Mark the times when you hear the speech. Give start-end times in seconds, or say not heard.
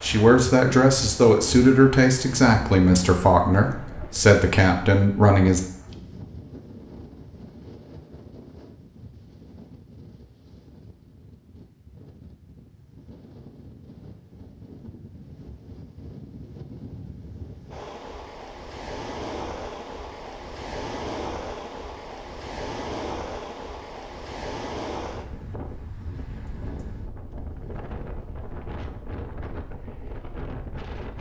0.0-5.6.